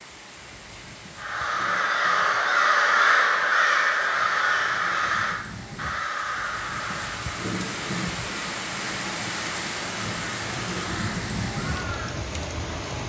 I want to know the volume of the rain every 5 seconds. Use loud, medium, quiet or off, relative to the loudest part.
quiet, loud, loud.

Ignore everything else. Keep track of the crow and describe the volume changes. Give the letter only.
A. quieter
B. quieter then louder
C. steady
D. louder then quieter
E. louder
A.